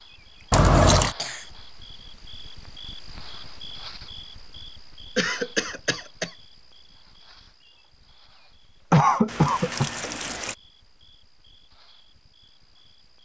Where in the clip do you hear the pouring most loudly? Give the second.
1 s.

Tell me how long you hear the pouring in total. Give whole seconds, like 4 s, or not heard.
2 s.